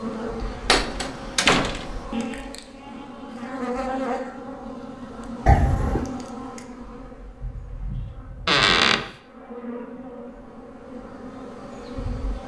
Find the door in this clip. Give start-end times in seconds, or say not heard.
0.7-2.0, 5.5-6.1, 8.4-9.1.